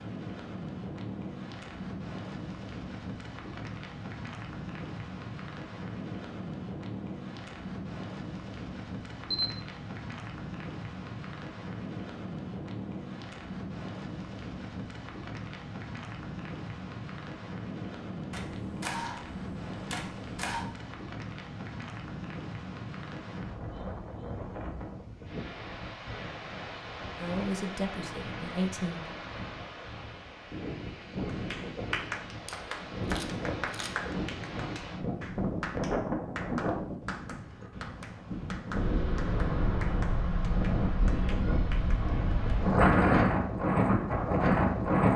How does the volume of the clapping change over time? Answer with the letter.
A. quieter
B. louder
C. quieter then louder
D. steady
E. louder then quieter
A.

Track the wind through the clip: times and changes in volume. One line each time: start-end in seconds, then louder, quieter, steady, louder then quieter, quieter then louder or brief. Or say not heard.
0.0-45.1 louder.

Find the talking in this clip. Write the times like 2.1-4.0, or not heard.
27.1-29.1.